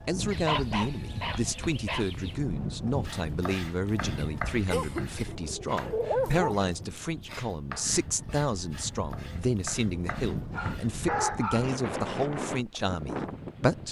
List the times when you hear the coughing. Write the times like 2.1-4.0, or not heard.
4.2-5.3.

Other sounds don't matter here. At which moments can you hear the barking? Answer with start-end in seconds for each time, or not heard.
0.2-2.4, 4.7-6.5, 10.5-11.7.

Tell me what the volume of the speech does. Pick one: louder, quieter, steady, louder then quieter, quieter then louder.
steady.